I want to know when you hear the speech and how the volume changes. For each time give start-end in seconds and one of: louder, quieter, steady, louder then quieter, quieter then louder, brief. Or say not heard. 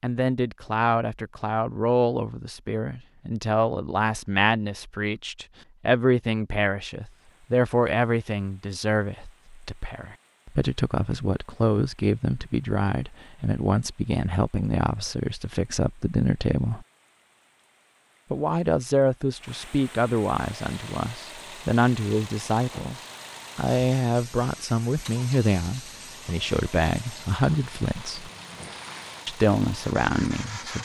0.0-16.9 steady
18.3-28.3 steady
29.2-30.7 brief.